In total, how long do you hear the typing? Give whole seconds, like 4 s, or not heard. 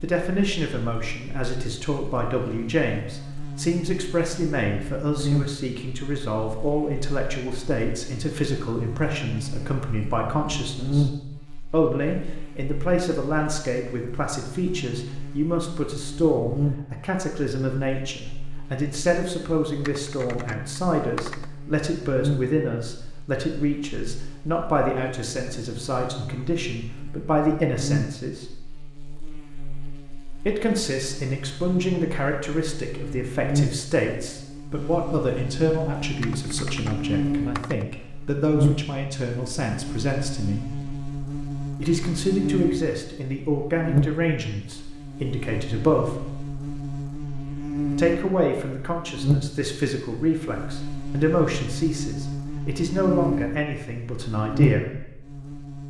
3 s.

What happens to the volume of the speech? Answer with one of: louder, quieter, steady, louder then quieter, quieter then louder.
steady.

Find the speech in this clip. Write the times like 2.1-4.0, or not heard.
0.0-11.1, 11.7-28.6, 30.4-40.7, 41.8-46.1, 48.0-54.9.